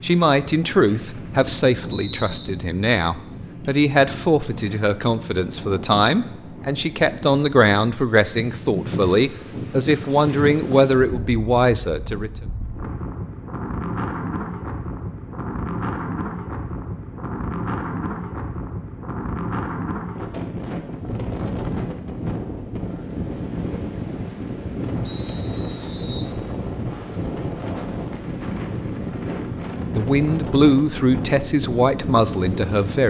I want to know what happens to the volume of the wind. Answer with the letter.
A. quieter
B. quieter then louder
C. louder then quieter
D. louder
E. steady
D.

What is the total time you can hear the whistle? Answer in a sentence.
The whistle can be heard for 3 seconds in total.